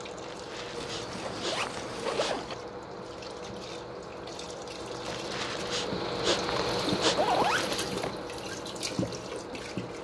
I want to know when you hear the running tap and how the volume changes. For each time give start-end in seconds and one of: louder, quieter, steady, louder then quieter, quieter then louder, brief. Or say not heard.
0.0-9.9 louder.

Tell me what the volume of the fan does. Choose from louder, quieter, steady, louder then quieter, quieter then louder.
louder then quieter.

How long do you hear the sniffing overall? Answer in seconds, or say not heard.
5 s.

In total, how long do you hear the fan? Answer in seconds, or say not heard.
10 s.